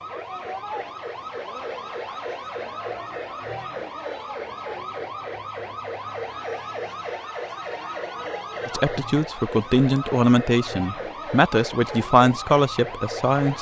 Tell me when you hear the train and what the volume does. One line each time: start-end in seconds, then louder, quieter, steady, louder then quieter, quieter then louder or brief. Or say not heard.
not heard.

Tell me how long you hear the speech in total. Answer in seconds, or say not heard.
5 s.